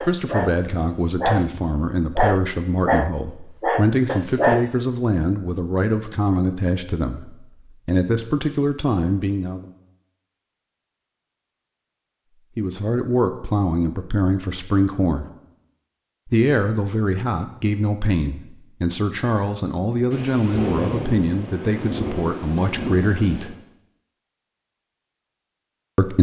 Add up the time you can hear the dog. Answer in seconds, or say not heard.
5 s.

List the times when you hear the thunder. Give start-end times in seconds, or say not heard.
20.1-23.5.